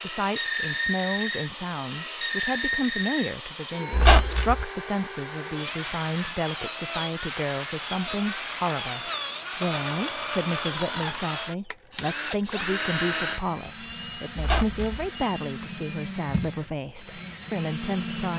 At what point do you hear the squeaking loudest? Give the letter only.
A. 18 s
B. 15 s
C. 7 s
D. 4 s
D.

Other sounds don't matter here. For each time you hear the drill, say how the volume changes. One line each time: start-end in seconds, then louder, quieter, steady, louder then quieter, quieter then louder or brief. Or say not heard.
0.0-18.3 quieter.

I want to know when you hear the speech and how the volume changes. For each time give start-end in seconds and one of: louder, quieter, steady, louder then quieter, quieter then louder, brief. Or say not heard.
0.0-18.3 steady.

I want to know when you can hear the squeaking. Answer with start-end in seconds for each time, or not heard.
3.9-4.7, 14.3-15.1.